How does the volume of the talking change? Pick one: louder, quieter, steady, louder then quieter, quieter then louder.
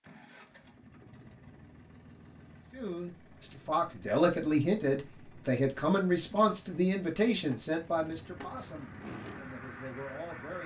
quieter.